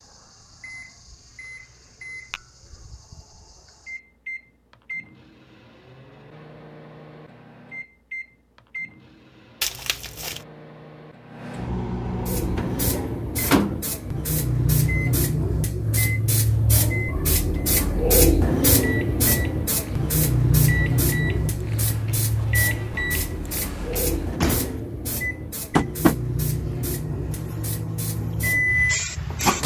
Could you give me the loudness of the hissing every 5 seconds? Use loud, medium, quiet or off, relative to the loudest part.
off, off, loud, loud, loud, medium.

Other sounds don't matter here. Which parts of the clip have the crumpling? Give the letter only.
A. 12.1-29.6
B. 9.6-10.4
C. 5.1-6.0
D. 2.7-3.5
B.